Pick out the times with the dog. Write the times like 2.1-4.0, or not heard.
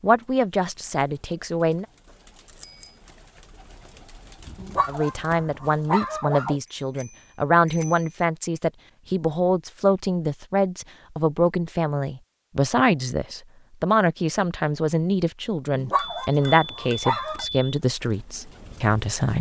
4.5-6.6, 15.7-17.4.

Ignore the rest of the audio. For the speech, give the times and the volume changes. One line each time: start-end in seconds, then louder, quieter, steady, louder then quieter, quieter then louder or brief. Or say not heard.
0.0-1.9 brief
4.8-19.3 steady.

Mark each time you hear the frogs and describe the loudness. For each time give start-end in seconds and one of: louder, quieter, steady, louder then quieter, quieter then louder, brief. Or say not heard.
not heard.